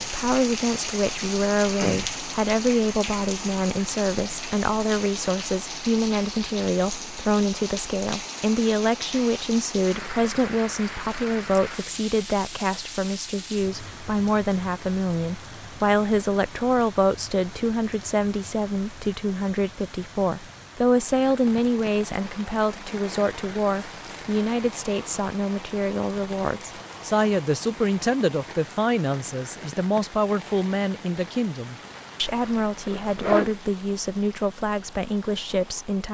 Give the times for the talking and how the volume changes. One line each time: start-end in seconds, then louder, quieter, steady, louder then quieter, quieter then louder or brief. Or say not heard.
0.0-36.0 steady.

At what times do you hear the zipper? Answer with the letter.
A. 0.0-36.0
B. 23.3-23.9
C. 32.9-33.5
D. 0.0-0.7
C.